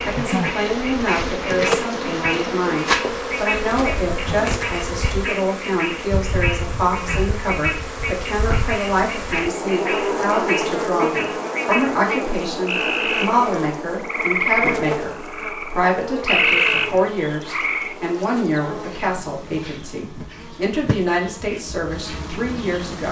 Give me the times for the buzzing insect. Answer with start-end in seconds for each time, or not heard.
0.0-23.0.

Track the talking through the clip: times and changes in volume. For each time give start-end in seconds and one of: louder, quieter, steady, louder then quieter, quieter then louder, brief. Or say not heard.
0.0-23.0 steady.